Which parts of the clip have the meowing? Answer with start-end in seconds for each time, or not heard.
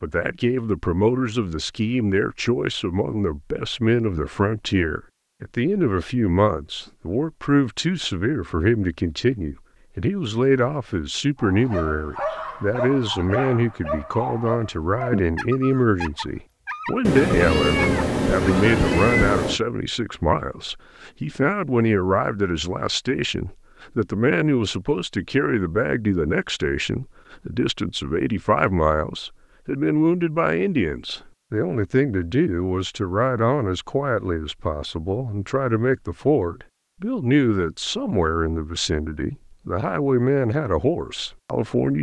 17.1-19.6.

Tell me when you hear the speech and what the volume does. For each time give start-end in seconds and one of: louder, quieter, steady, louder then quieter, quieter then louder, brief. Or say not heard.
0.0-41.9 steady.